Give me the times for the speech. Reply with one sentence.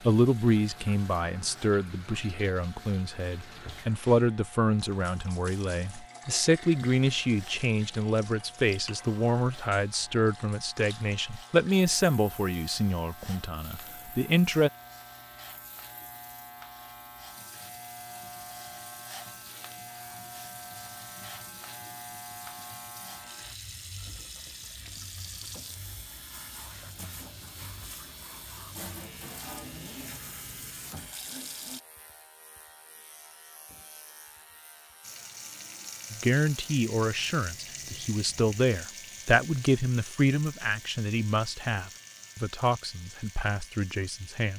The speech can be heard from 0.1 to 14.7 s and from 36.1 to 44.5 s.